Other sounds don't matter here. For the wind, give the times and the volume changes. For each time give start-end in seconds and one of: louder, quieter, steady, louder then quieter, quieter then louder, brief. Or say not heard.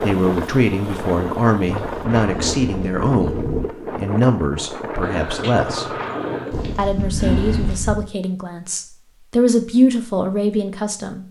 0.0-6.8 steady.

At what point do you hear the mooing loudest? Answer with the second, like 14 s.
7 s.